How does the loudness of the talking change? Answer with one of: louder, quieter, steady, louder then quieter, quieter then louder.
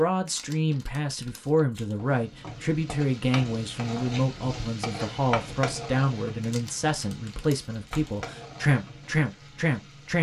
steady.